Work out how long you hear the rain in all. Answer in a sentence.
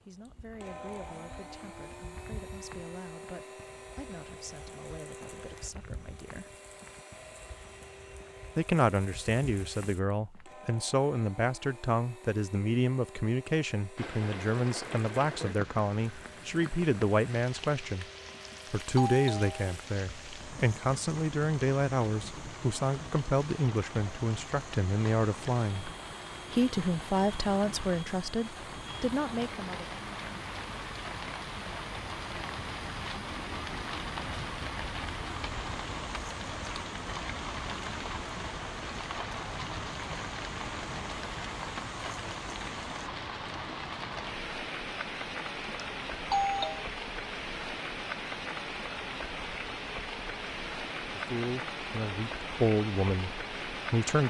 You can hear the rain for 40 seconds altogether.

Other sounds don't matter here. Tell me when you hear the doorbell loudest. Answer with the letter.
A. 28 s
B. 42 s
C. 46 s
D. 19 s
C.